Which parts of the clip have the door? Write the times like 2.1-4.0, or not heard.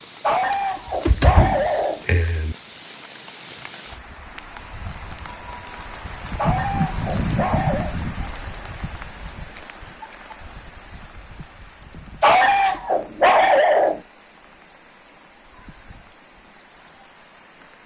1.1-2.5.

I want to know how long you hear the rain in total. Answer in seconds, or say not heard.
18 s.